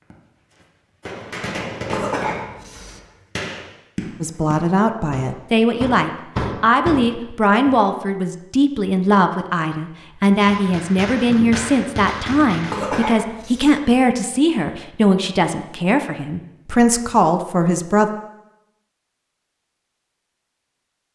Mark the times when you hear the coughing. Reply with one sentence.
You can hear the coughing from 1.9 to 3.0 s and from 12.7 to 13.8 s.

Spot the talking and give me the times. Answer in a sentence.
You can hear the talking from 4.2 to 18.1 s.